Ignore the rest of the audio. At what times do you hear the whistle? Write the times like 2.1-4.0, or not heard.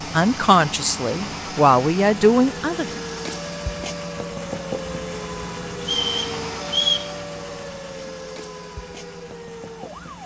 5.8-7.1.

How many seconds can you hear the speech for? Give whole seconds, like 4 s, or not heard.
3 s.